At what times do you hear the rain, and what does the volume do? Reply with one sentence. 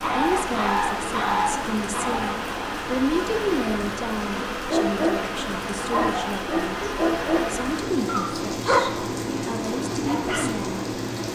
You can hear the rain from 0.0 to 11.3 s, at a steady volume.